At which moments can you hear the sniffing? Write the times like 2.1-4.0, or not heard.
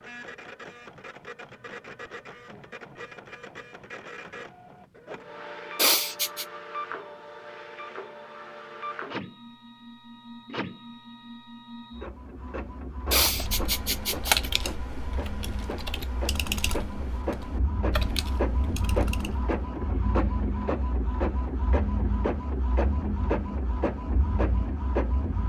5.8-6.5, 13.1-14.5.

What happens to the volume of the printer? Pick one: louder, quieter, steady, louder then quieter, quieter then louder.
louder.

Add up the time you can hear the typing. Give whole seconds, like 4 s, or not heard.
6 s.